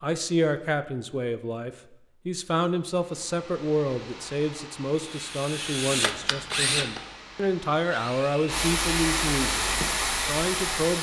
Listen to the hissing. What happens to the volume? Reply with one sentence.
The volume of the hissing goes up.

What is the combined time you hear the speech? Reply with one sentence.
The speech can be heard for 11 seconds in total.